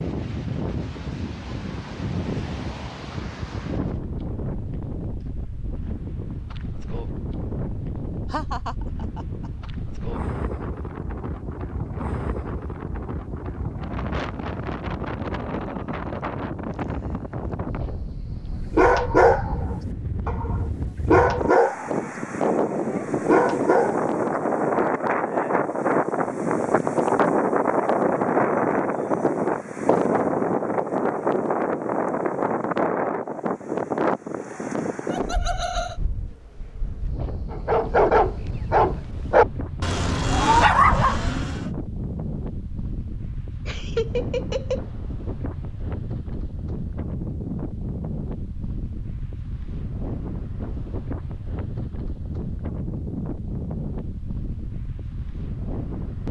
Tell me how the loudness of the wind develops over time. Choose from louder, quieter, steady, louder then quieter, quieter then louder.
louder then quieter.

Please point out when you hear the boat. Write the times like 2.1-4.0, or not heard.
not heard.